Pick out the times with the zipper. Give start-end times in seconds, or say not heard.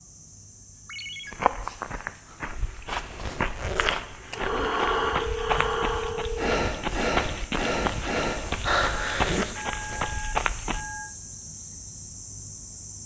2.9-4.2, 8.4-10.2.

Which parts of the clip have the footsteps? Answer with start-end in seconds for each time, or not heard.
1.3-10.8.